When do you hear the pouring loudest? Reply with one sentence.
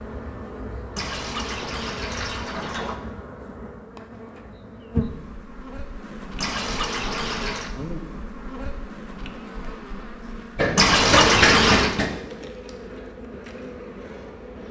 The loudest moment of the pouring is at 11 seconds.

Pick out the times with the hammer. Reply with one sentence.
You can hear the hammer from 10.6 to 12.1 s.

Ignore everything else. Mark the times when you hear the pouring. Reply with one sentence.
You can hear the pouring from 0.9 to 3.0 s, from 6.4 to 7.8 s and from 10.8 to 11.9 s.